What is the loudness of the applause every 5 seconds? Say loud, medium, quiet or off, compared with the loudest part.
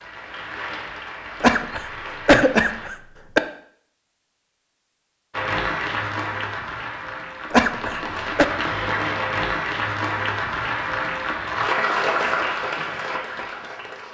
medium, loud, loud.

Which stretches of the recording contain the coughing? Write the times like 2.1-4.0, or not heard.
1.4-3.4, 7.5-8.4.